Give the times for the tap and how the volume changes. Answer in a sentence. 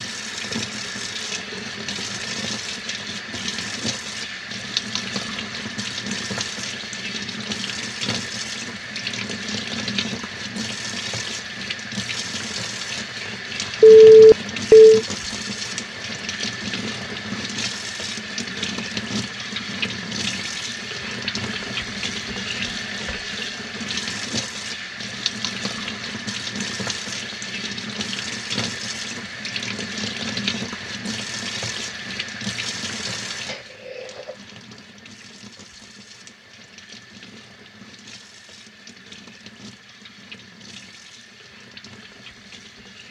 The tap can be heard from 0.0 to 43.0 s, getting quieter.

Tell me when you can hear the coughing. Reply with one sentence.
You can hear the coughing from 33.5 to 34.5 s.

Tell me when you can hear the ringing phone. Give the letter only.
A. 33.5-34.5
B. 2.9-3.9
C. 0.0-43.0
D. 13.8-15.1
D.